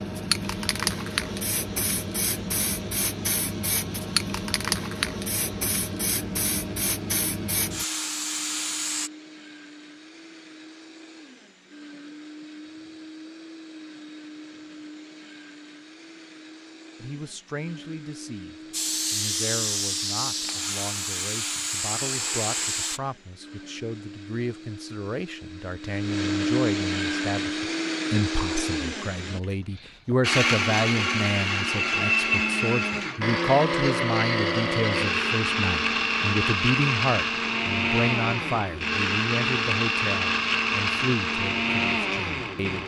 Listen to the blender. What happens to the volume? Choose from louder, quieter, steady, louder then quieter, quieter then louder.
louder.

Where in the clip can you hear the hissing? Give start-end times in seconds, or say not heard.
0.0-9.1, 18.7-23.0.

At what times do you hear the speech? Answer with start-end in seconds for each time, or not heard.
17.0-42.8.